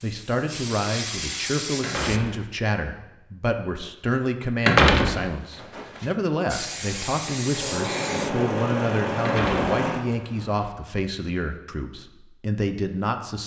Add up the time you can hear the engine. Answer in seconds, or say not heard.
3 s.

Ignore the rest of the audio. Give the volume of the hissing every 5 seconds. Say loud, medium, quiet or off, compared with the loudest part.
loud, loud, off.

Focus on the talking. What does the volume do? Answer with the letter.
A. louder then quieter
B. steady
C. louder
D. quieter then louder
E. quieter
B.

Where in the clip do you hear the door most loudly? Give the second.
5 s.